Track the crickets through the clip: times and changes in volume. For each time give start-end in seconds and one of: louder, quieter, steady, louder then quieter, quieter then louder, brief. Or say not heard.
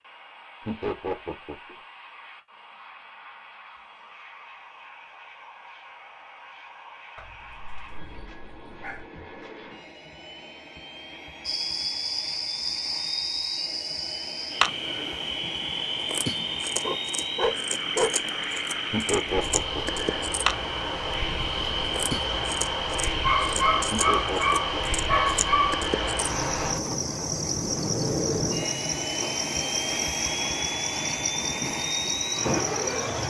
11.4-33.2 steady.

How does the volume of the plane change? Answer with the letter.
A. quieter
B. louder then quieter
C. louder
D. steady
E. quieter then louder
C.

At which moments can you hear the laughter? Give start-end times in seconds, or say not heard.
0.7-1.8, 18.9-20.0, 23.9-24.8.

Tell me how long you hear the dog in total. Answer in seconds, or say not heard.
6 s.